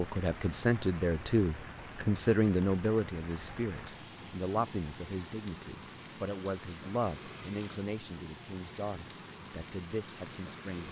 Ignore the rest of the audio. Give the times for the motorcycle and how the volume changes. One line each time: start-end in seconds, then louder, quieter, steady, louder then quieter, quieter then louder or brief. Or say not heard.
not heard.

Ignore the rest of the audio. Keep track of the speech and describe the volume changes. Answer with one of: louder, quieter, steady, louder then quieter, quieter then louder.
quieter.